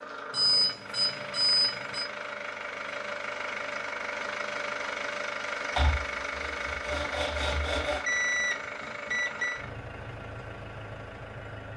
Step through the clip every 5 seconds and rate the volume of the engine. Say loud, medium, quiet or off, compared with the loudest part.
loud, loud, medium.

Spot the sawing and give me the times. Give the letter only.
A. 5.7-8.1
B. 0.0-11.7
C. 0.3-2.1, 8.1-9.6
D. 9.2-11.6
A.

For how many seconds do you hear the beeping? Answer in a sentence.
The beeping can be heard for 3 seconds in total.